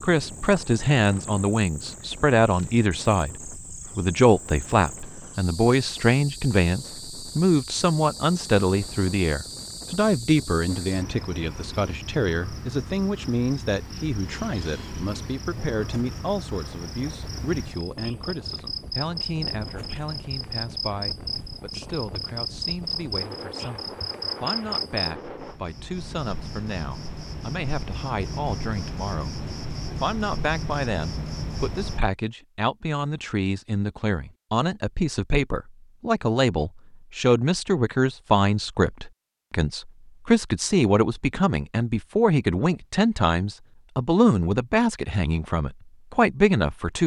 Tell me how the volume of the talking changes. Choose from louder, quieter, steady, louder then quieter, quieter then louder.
quieter then louder.